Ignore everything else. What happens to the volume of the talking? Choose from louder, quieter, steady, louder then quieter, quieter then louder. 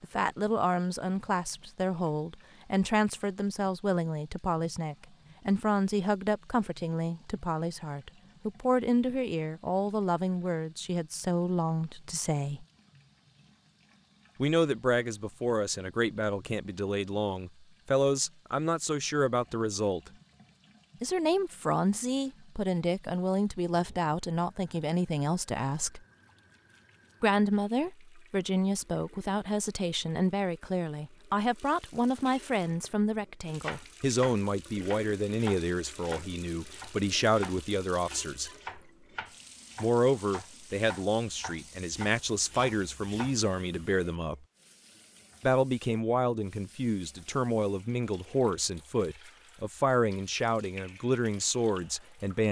steady.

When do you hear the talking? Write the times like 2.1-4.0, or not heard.
0.0-12.7, 14.4-20.1, 21.0-26.0, 27.2-38.5, 39.8-44.4, 45.4-52.4.